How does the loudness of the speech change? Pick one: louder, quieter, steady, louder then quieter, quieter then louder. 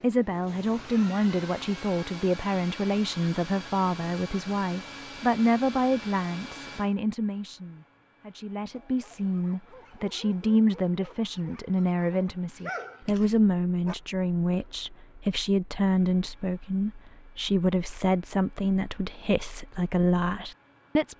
steady.